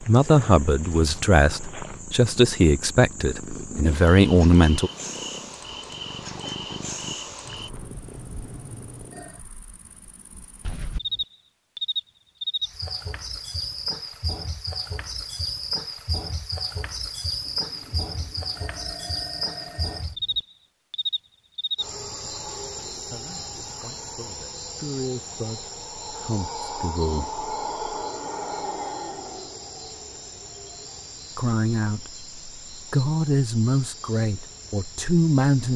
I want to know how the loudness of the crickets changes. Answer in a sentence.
The volume of the crickets goes up, then down.